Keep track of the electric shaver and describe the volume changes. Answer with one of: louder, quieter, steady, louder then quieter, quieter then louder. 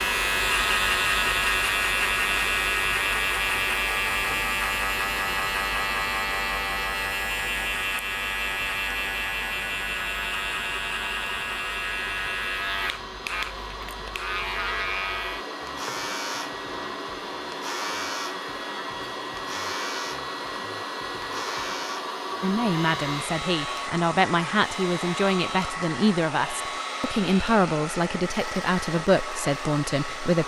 quieter.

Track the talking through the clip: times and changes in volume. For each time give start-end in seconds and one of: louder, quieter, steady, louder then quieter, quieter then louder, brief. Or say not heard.
22.4-30.4 steady.